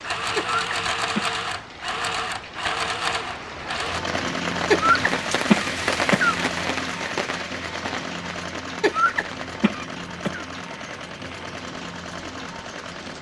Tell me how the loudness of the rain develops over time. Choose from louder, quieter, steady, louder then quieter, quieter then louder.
louder then quieter.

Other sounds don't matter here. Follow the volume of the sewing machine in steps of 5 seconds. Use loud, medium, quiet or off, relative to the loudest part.
loud, medium, medium.